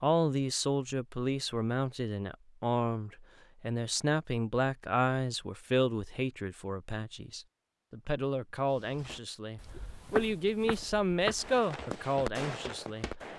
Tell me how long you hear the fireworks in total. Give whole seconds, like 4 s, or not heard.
2 s.